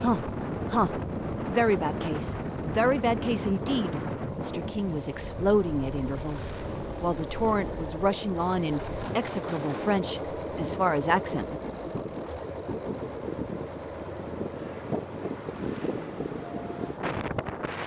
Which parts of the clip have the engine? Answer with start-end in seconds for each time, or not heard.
0.1-17.8.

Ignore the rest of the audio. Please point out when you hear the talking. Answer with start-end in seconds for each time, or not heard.
0.0-11.6.